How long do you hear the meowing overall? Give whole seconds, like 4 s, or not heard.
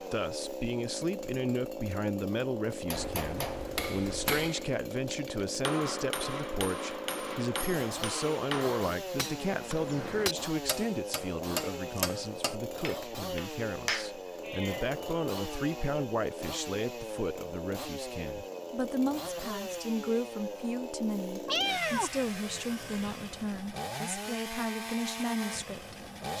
4 s.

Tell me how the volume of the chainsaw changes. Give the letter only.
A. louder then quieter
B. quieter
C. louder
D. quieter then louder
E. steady
E.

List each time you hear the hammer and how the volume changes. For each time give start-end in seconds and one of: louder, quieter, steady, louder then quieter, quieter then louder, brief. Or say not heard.
2.9-14.1 steady.